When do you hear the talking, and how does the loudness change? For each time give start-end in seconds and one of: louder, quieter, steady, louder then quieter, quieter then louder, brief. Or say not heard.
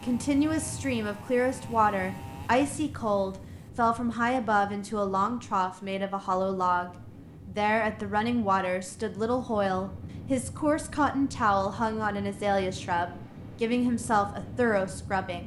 0.0-15.4 steady.